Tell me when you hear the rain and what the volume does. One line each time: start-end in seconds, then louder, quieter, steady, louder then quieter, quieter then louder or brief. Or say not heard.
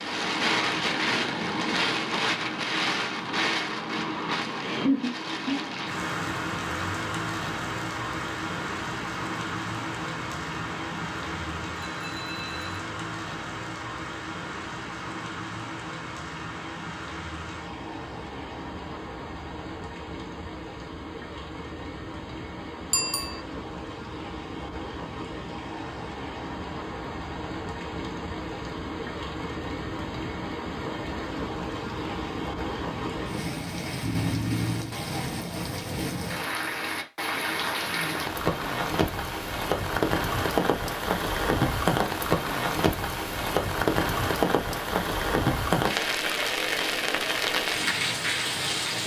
0.0-49.0 quieter then louder.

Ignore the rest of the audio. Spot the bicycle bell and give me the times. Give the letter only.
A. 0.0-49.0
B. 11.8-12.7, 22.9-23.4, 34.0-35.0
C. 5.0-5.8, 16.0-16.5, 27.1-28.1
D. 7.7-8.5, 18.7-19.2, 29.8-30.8
B.